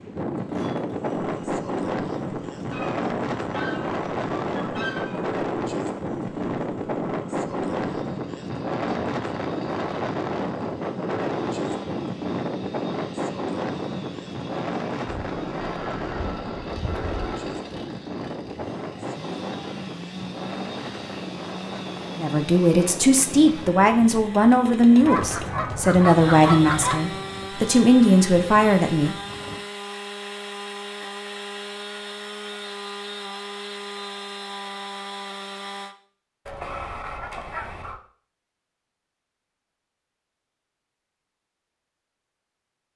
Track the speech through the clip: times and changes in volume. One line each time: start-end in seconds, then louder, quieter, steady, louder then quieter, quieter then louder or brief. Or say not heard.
22.1-29.1 steady.